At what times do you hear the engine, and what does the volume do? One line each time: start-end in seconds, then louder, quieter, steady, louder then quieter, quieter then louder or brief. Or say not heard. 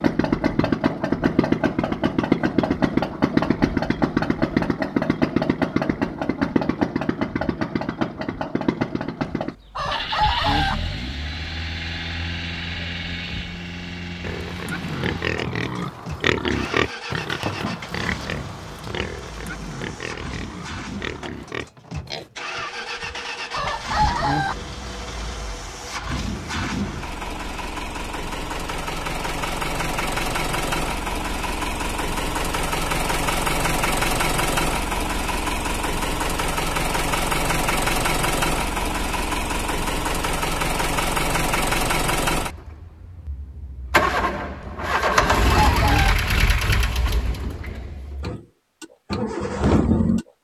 0.0-50.2 quieter then louder.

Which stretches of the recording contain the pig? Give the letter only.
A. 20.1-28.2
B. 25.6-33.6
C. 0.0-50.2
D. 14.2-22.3
D.